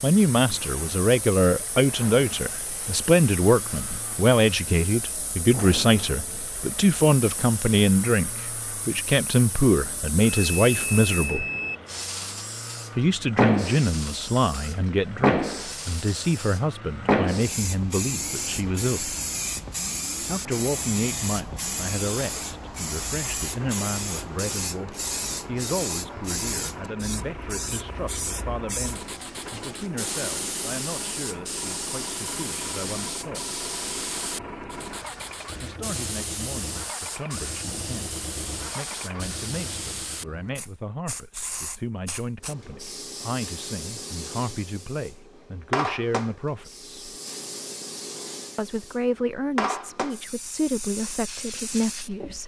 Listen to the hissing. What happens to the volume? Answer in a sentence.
The volume of the hissing goes up, then down.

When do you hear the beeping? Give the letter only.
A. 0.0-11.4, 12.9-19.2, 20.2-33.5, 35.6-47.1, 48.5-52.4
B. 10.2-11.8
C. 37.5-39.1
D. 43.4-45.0
B.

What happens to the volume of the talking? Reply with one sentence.
The loudness of the talking goes down, then up.